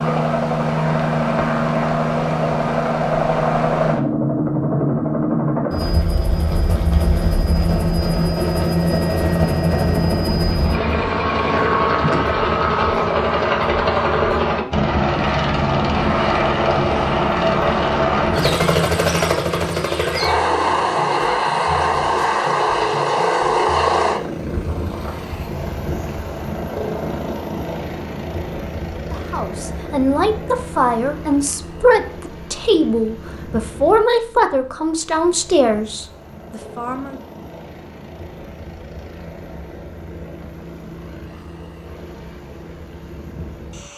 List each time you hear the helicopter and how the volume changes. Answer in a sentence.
The helicopter can be heard from 0.0 to 43.9 s, getting quieter.